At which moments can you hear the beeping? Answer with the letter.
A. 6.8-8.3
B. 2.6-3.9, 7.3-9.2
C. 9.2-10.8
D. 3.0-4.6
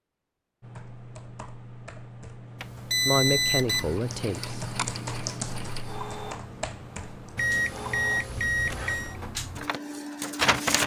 B.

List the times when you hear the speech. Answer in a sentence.
The speech can be heard from 3.0 to 4.6 s.